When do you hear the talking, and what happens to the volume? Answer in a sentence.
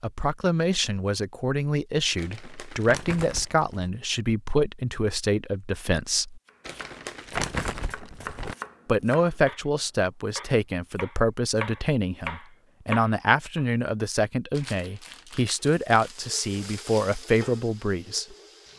You can hear the talking from 0.0 to 6.4 s, at a steady volume; and from 8.8 to 18.2 s, at a steady volume.